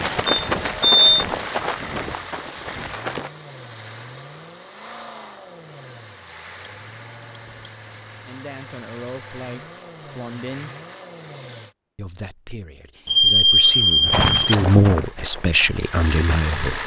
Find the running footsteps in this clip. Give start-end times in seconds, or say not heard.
0.0-3.3, 14.0-16.8.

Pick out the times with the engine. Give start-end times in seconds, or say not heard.
0.0-11.8, 14.9-16.8.